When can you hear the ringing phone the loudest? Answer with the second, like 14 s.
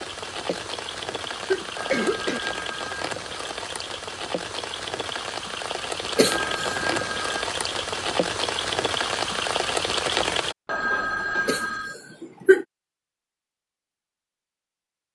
11 s.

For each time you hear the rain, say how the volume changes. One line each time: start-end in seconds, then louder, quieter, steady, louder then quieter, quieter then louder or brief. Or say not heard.
0.0-10.6 louder.